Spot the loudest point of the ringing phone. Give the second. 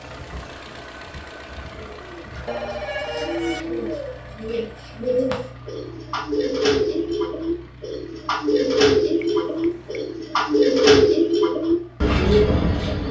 3 s.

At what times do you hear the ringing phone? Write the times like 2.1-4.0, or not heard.
2.5-3.6, 9.2-10.1.